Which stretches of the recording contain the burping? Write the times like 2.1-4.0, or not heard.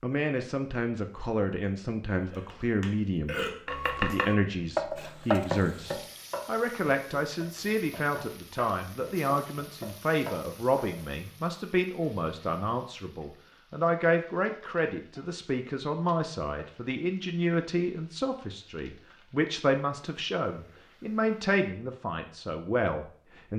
2.2-3.5.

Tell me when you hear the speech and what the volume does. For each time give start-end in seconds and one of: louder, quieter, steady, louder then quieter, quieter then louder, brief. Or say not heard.
0.0-23.5 steady.